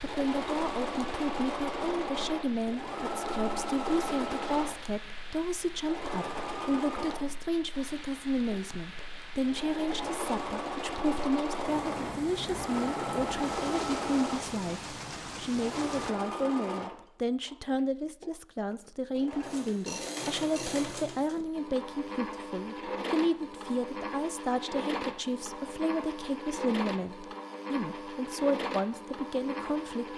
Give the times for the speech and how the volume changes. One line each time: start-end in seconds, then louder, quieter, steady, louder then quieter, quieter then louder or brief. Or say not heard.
0.0-30.1 steady.